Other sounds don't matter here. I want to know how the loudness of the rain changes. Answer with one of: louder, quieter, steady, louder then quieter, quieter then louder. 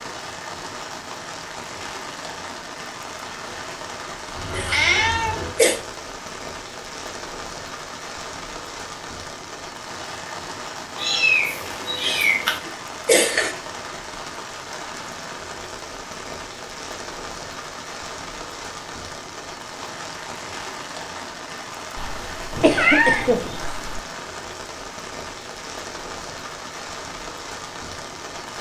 steady.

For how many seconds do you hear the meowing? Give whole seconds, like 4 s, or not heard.
5 s.